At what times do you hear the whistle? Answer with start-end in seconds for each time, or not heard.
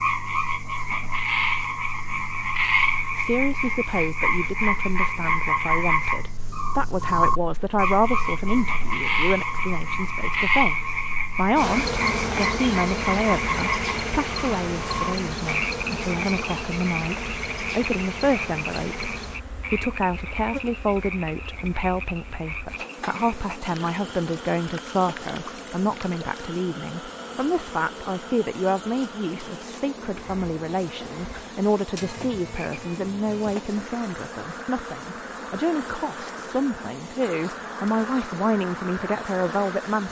not heard.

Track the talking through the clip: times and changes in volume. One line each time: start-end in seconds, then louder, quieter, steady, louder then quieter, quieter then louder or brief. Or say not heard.
3.1-40.0 steady.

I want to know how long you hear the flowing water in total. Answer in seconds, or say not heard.
not heard.